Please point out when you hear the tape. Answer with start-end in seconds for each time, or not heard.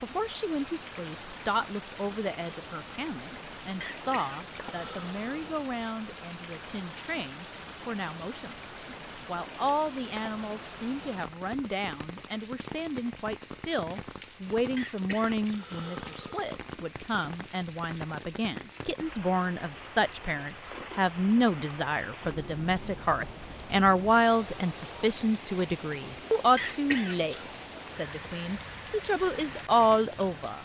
not heard.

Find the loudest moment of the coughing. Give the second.
27 s.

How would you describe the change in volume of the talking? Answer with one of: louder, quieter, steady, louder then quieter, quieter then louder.
louder.